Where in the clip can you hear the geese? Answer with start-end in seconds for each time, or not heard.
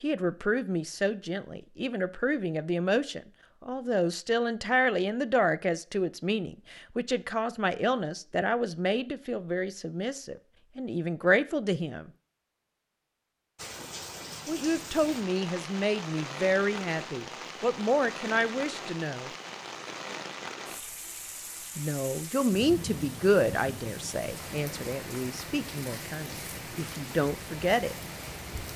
not heard.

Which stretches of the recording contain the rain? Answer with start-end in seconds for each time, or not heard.
13.6-28.7.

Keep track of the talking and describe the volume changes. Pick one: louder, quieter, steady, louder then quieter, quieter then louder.
steady.